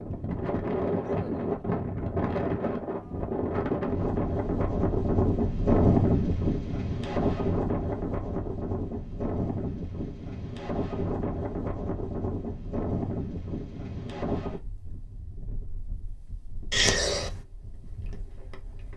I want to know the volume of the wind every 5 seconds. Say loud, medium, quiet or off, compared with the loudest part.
loud, loud, medium, quiet.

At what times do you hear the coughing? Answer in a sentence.
The coughing can be heard from 16.7 to 17.4 s.